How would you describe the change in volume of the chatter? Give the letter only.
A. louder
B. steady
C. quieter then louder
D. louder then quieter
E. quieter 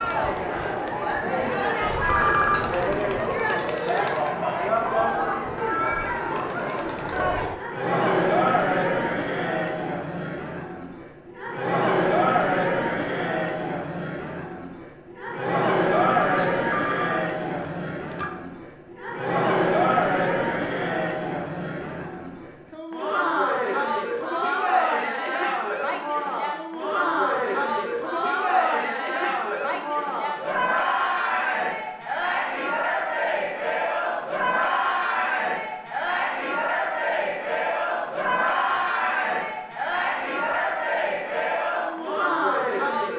B.